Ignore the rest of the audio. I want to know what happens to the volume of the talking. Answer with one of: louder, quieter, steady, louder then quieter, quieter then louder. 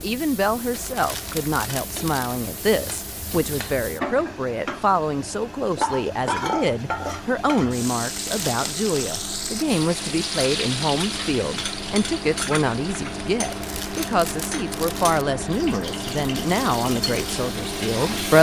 steady.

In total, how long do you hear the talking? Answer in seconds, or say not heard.
18 s.